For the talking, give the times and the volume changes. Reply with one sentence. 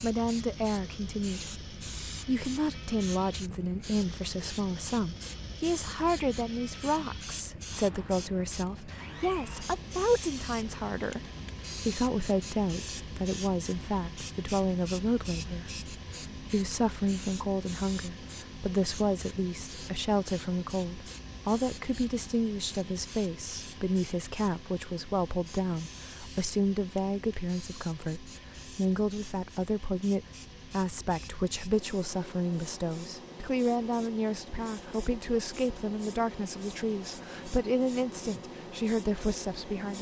The talking can be heard from 0.0 to 39.9 s, at a steady volume.